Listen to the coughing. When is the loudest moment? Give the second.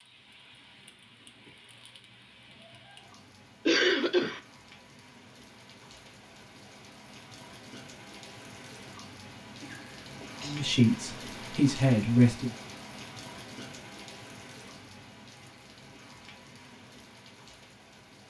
4 s.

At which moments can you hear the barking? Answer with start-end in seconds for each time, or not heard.
not heard.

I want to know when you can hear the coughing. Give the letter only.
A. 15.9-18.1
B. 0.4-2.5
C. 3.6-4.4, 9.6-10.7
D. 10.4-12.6
C.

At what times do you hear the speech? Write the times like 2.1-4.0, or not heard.
10.4-12.6.